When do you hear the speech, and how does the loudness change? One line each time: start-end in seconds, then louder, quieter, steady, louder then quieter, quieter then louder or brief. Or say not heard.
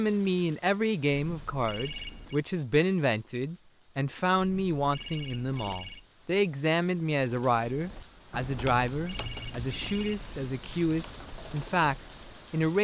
0.0-12.7 steady.